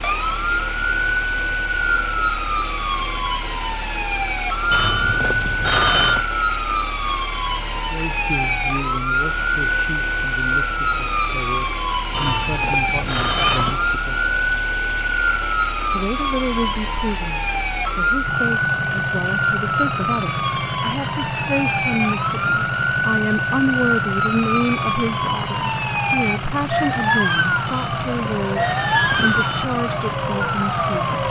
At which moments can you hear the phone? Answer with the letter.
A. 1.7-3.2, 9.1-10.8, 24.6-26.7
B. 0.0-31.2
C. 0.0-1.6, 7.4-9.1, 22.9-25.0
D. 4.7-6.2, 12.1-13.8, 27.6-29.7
D.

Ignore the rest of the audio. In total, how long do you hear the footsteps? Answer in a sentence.
You can't hear the footsteps here.